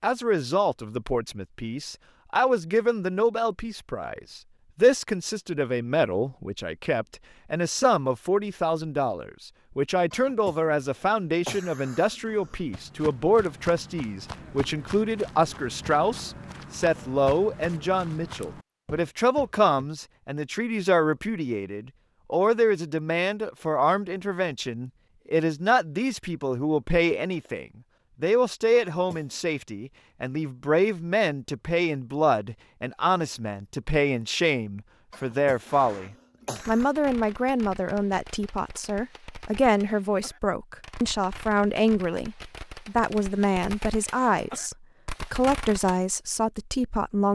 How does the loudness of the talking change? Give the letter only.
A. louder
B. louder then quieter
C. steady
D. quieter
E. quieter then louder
C.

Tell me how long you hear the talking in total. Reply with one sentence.
The talking can be heard for 47 seconds in total.